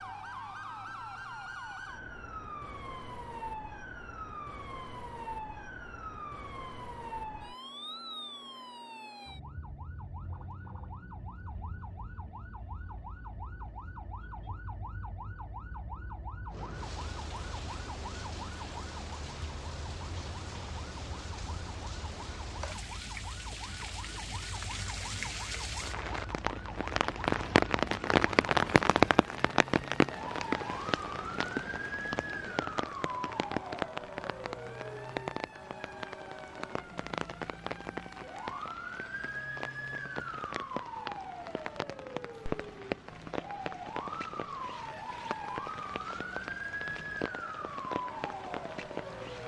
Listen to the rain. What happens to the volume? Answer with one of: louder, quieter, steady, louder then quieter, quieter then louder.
louder then quieter.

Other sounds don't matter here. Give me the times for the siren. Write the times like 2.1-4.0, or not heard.
0.0-49.4.